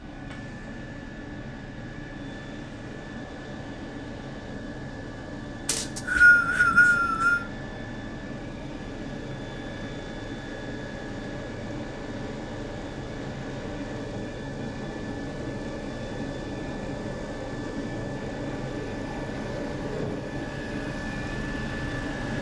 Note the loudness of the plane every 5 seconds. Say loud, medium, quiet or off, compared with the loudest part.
medium, medium, loud, loud, loud.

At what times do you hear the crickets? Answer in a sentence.
You can't hear the crickets here.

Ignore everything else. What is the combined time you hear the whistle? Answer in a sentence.
You can hear the whistle for 2 seconds altogether.